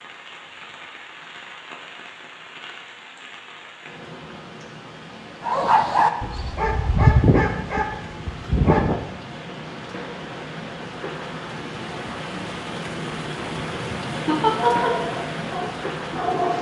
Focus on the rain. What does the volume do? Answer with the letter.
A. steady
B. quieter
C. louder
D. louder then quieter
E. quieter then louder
C.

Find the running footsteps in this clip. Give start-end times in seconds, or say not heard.
not heard.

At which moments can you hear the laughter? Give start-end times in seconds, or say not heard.
14.2-14.9.